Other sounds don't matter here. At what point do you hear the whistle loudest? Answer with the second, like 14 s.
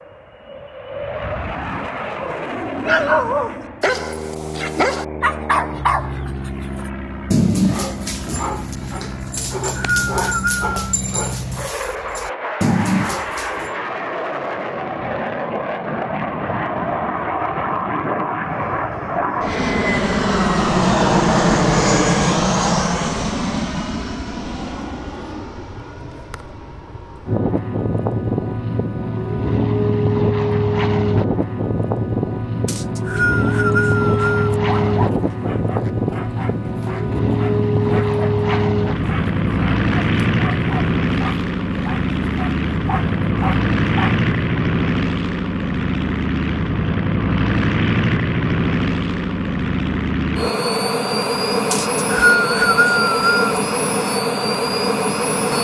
52 s.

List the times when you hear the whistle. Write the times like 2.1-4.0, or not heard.
9.3-10.9, 32.6-34.5, 51.7-53.4.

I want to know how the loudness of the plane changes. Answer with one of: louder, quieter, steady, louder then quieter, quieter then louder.
louder.